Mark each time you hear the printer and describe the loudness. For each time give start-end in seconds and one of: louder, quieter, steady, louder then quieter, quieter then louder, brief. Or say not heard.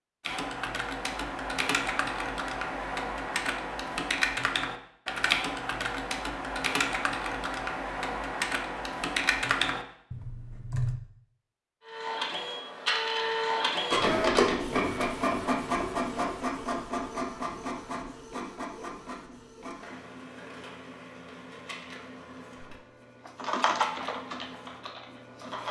11.8-25.6 quieter.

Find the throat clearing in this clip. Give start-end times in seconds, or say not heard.
not heard.